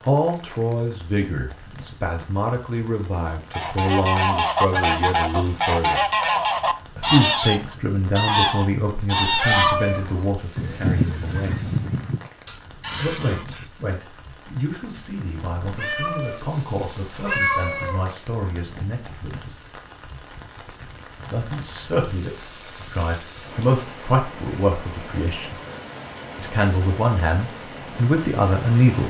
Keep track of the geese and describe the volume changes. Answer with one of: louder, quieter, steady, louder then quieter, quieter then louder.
quieter.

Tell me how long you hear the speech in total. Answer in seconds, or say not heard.
24 s.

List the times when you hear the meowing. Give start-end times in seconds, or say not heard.
9.2-10.2, 15.6-16.4, 17.2-17.9.